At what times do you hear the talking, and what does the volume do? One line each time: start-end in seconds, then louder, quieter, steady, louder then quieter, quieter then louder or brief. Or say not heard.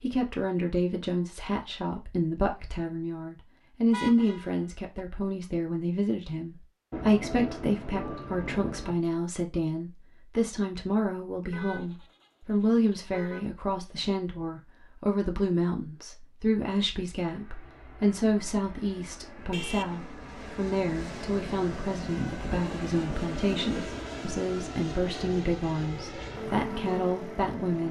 0.0-27.8 steady.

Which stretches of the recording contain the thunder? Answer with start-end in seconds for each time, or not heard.
6.9-8.9, 22.5-24.0.